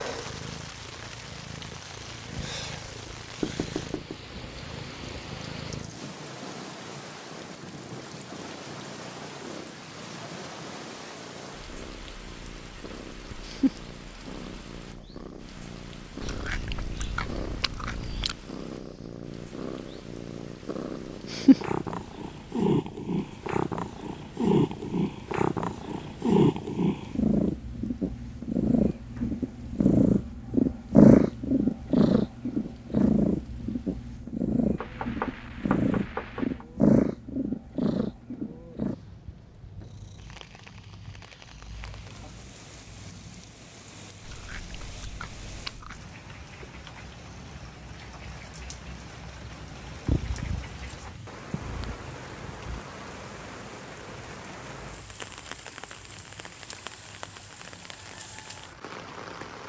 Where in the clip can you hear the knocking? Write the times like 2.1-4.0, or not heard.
3.4-4.2, 34.8-36.6.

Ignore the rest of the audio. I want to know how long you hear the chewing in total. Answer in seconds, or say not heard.
4 s.